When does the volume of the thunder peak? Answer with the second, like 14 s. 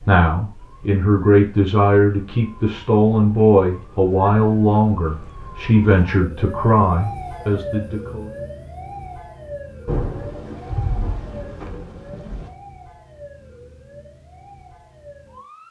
10 s.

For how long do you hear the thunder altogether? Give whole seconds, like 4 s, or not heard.
3 s.